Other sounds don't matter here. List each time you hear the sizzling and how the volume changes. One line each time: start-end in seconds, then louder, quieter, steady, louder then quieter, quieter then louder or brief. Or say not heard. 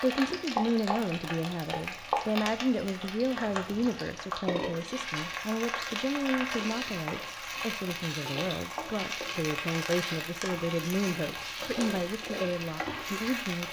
0.0-13.6 steady.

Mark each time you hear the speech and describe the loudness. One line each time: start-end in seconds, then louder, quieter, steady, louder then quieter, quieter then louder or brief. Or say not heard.
0.0-13.6 steady.